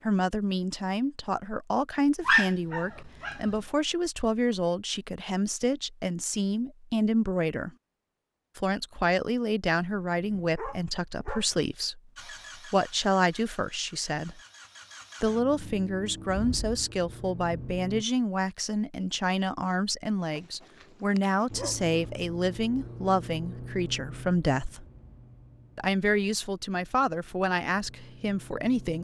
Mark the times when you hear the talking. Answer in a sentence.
You can hear the talking from 0.0 to 7.7 s, from 8.6 to 14.4 s, from 15.2 to 24.9 s and from 25.8 to 28.9 s.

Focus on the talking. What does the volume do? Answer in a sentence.
The volume of the talking stays about the same.